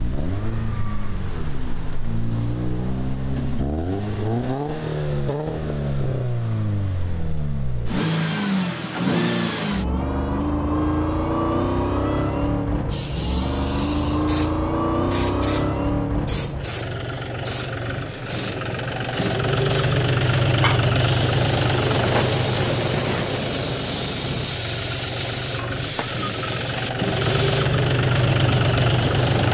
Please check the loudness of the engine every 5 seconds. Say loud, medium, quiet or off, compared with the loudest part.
medium, loud, loud, loud, loud, loud.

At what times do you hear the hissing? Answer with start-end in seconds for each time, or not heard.
12.9-29.4.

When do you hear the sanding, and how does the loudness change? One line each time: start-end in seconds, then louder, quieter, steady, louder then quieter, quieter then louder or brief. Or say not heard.
not heard.